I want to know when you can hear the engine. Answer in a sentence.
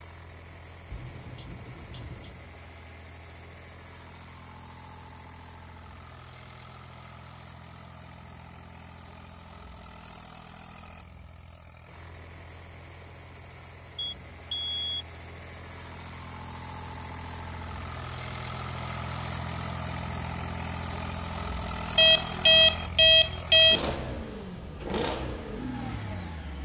You can hear the engine from 0.0 to 26.6 s.